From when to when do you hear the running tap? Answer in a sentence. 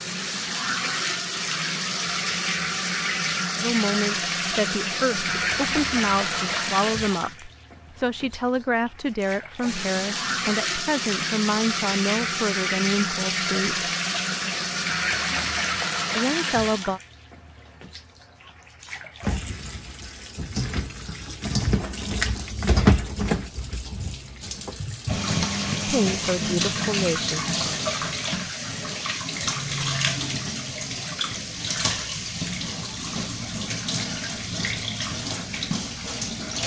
You can hear the running tap from 0.0 to 36.6 s.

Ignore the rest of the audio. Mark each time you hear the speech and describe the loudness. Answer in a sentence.
The speech can be heard from 3.5 to 13.9 s, at a steady volume; briefly from 16.1 to 17.0 s; and briefly from 25.9 to 27.4 s.